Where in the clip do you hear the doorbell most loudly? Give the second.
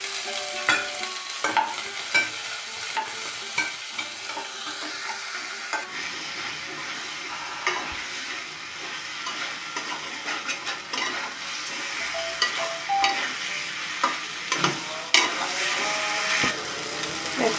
13 s.